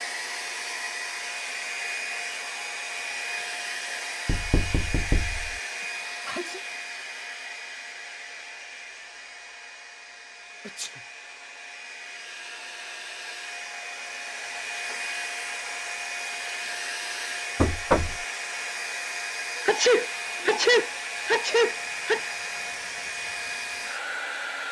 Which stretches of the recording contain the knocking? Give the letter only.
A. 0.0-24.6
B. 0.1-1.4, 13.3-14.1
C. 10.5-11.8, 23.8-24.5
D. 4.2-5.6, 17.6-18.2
D.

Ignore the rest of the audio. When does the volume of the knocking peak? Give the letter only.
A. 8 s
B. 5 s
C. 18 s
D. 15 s
C.